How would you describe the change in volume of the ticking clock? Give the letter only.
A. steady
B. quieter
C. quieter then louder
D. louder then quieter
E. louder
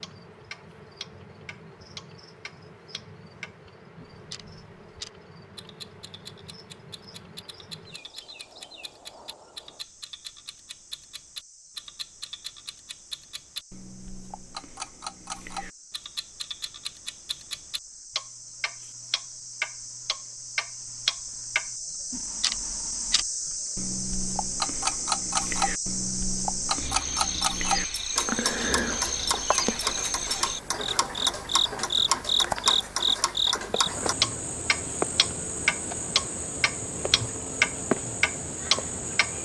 E.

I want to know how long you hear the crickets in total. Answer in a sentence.
You can hear the crickets for 39 seconds altogether.